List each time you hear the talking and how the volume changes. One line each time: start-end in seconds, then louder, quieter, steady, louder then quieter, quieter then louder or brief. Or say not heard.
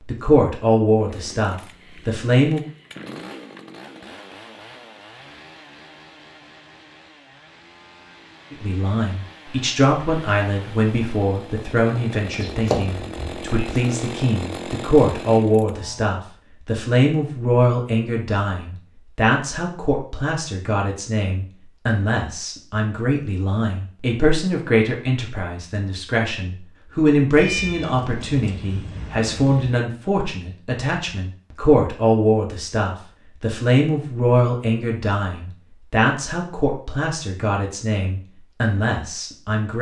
0.1-2.6 brief
8.5-39.7 steady.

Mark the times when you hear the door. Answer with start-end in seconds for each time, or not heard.
12.3-13.3.